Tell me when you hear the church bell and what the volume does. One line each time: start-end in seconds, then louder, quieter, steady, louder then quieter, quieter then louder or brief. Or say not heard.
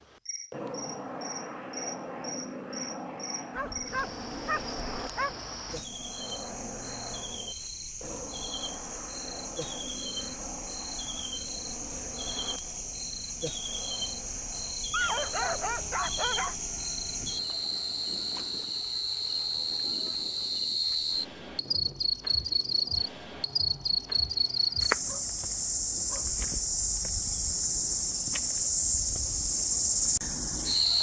not heard.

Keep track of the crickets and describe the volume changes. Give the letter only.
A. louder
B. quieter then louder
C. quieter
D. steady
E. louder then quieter
A.